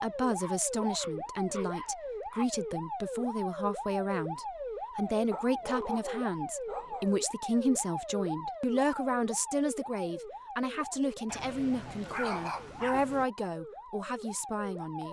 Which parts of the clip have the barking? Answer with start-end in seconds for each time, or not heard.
0.3-2.5, 5.3-7.2, 11.2-13.2.